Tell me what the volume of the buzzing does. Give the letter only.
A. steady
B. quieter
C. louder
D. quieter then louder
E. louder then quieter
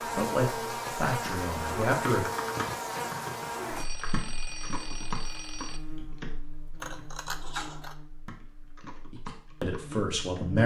B.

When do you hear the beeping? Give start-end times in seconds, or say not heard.
3.8-5.8.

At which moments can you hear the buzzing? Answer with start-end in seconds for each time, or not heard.
0.0-10.6.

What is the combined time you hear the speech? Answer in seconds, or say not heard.
4 s.